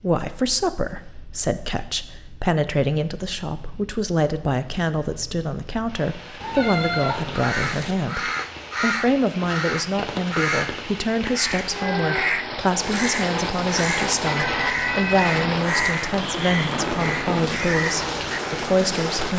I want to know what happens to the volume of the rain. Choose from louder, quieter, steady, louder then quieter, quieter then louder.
louder.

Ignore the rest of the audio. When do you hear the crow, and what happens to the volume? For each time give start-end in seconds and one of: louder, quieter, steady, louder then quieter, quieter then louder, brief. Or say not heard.
7.3-18.6 steady.